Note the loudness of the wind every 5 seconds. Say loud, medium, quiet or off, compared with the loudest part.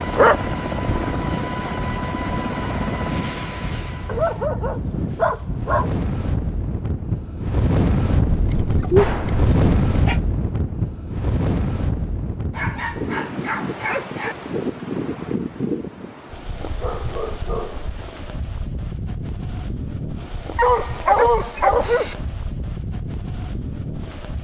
medium, loud, loud, medium, medium.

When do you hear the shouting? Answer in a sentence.
You can't hear the shouting here.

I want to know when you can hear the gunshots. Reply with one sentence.
You can hear the gunshots from 8.9 to 9.5 s and from 21.8 to 22.4 s.